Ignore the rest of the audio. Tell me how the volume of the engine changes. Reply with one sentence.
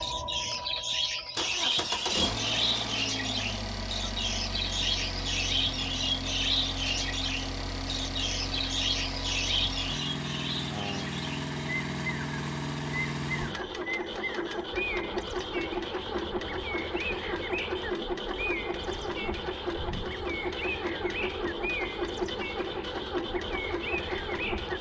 The volume of the engine stays about the same.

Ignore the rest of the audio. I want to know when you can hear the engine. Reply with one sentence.
The engine can be heard from 0.0 to 24.7 s.